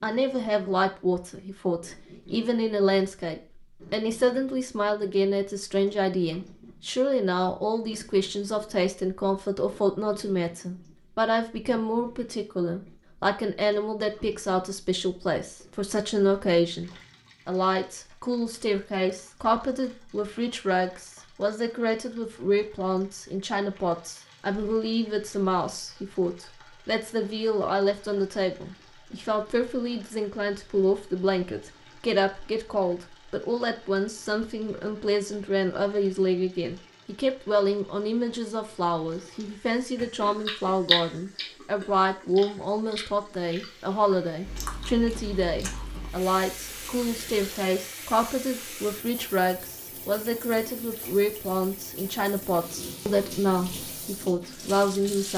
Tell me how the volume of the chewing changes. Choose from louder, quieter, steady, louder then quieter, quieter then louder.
quieter.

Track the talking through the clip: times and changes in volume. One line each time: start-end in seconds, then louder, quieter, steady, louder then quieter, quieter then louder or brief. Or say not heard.
0.0-55.3 steady.